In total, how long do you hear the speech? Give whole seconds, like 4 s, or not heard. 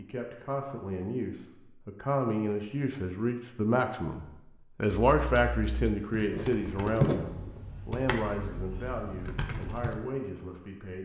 11 s.